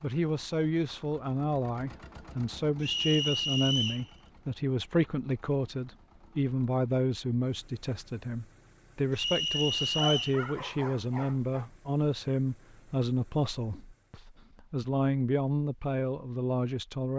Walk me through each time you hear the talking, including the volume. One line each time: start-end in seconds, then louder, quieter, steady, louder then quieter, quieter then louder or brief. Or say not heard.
0.0-17.1 steady.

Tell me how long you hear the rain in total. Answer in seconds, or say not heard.
not heard.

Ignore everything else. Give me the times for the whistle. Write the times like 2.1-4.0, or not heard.
2.8-4.0, 9.2-10.4.